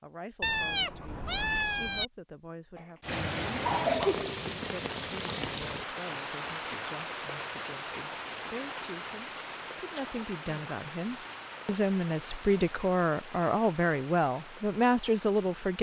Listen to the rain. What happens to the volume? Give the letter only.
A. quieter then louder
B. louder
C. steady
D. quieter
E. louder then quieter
D.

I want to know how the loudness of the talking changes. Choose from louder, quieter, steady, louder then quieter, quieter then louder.
louder.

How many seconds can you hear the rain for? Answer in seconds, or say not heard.
13 s.